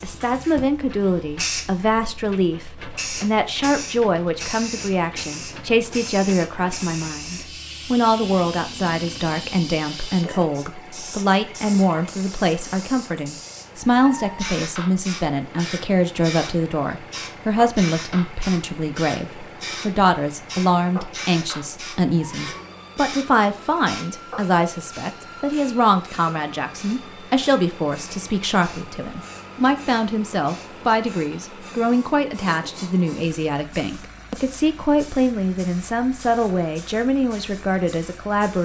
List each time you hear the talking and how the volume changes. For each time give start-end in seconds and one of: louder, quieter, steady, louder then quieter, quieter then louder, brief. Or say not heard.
0.0-38.5 steady.